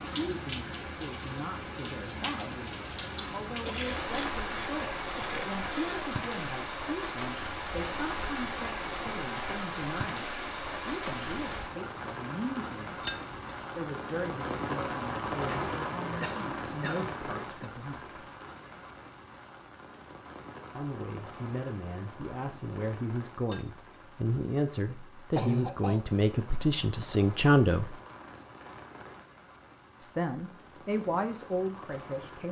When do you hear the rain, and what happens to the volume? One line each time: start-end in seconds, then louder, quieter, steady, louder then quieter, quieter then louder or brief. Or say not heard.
0.0-32.4 quieter.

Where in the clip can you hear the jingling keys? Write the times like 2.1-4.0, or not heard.
13.1-13.6, 23.4-24.0.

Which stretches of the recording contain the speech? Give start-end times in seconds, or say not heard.
0.1-12.9, 13.8-18.2, 20.7-27.9, 30.0-32.4.